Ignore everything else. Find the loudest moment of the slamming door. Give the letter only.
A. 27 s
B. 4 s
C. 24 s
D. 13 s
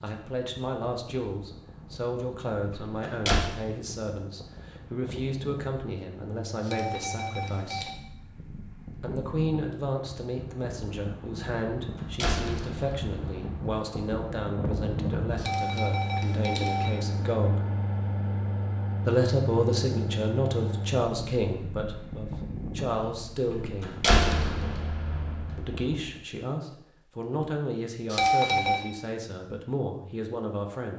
C.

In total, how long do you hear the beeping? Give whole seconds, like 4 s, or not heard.
4 s.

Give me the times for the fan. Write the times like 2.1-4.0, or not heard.
0.1-26.2.